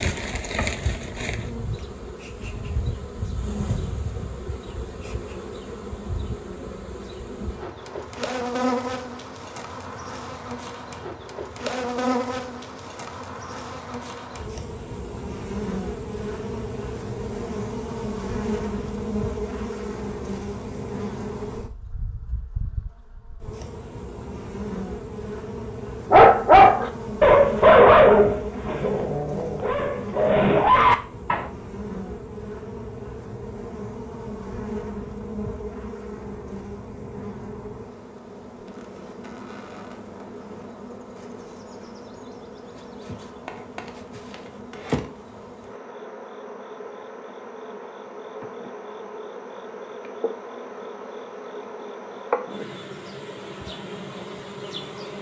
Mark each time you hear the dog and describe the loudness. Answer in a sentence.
You can hear the dog from 26.1 to 31.4 s, getting quieter then louder.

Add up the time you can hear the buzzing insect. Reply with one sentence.
You can hear the buzzing insect for 55 seconds altogether.